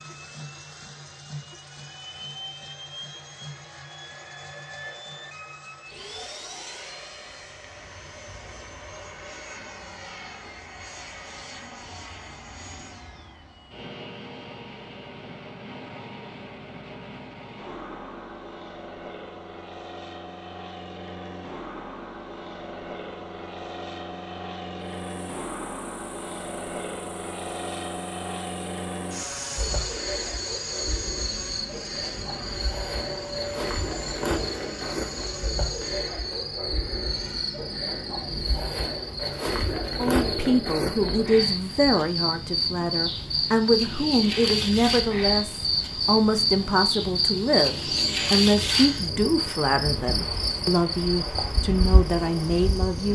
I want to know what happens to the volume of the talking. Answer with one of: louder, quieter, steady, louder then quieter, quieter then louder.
steady.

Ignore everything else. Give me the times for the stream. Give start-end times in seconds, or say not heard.
not heard.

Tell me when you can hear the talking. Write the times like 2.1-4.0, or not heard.
40.0-53.1.